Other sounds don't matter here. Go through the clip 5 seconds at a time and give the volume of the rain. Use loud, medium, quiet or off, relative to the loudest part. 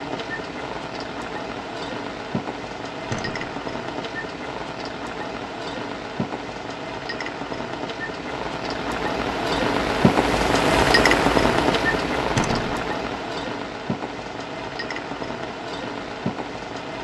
medium, medium, loud, medium.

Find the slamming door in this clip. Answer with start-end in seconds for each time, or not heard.
3.1-3.6, 12.3-12.8.